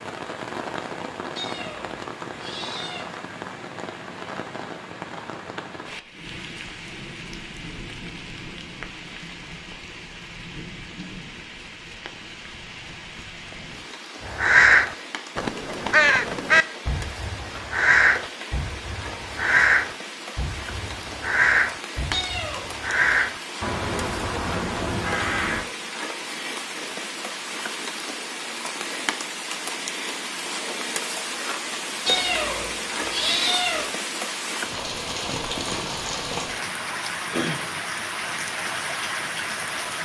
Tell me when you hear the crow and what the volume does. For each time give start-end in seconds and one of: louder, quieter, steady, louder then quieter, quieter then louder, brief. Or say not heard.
14.2-25.7 quieter.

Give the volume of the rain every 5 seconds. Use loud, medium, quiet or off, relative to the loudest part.
medium, medium, medium, medium, medium, loud, loud, loud.